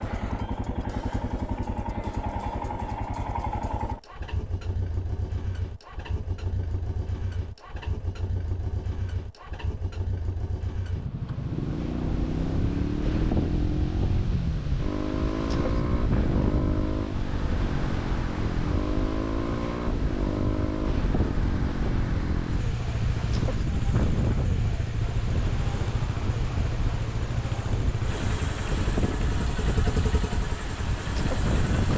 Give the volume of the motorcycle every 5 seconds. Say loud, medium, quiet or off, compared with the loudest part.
loud, medium, loud, loud, loud, loud, loud.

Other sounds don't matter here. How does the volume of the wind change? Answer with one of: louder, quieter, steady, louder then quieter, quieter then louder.
steady.